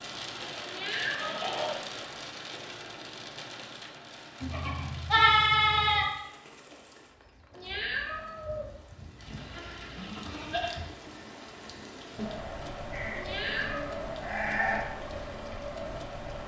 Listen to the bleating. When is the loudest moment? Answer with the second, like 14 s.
5 s.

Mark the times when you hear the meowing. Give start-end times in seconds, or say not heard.
0.7-1.8, 7.5-8.7, 13.2-13.8.